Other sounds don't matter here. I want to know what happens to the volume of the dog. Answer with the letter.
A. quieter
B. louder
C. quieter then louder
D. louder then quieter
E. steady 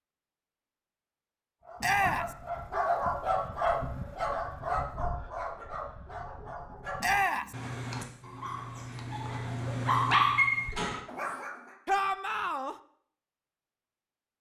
C.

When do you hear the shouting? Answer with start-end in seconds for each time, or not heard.
1.8-2.4, 7.0-7.5, 11.8-12.8.